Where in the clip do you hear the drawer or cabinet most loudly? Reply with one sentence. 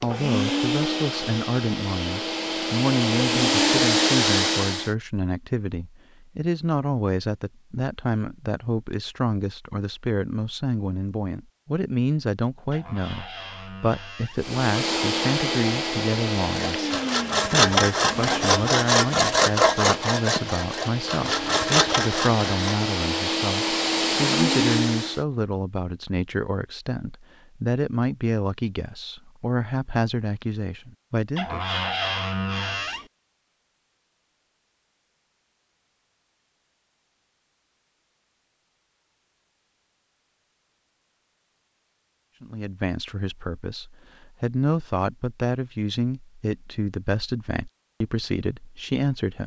The volume of the drawer or cabinet peaks at 32 seconds.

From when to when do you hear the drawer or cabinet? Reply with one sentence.
The drawer or cabinet can be heard from 12.7 to 14.4 s and from 31.4 to 33.1 s.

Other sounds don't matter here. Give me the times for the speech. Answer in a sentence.
You can hear the speech from 0.0 to 31.6 s and from 42.4 to 49.4 s.